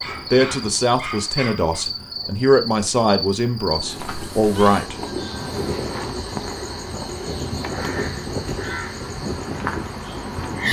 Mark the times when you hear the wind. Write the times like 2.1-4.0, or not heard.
0.0-10.6.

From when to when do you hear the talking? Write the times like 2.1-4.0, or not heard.
0.3-5.0.